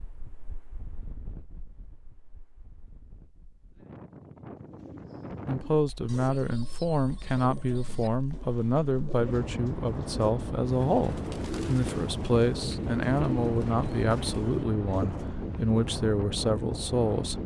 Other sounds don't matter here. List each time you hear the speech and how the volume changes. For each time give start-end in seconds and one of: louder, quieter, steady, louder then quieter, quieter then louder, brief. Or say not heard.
5.5-17.4 steady.